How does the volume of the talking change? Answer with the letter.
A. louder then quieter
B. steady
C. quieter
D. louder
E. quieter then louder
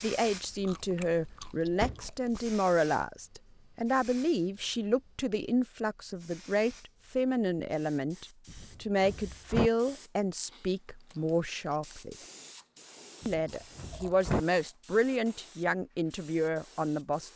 B.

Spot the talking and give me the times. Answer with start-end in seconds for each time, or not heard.
0.0-12.2, 13.2-17.3.